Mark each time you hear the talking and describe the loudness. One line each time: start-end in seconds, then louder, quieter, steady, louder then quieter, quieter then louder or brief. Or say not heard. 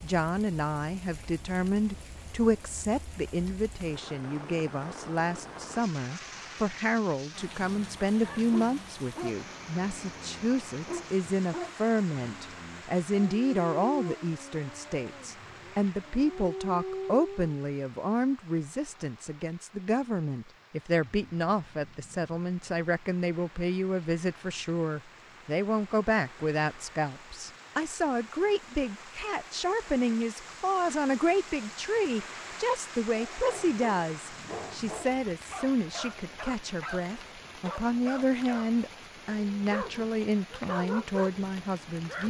0.0-42.2 steady.